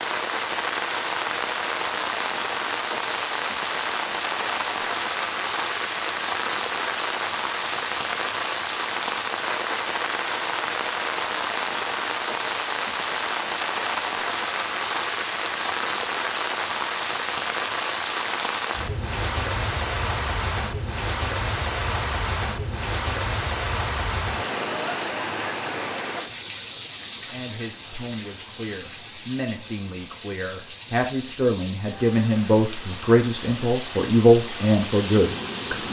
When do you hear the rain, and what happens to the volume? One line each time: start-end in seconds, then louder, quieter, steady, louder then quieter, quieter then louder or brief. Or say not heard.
0.0-35.8 quieter.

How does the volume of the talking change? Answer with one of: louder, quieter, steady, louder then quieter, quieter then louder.
louder.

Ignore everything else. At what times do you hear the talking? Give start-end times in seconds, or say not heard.
27.2-35.8.